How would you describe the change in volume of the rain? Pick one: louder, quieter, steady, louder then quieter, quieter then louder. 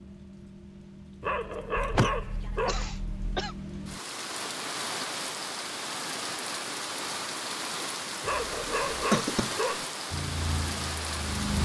louder.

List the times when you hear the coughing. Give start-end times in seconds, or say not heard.
1.8-3.5, 8.7-9.6.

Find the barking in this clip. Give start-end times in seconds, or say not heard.
1.2-2.9, 8.2-9.8.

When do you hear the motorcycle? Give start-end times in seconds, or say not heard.
10.1-11.5.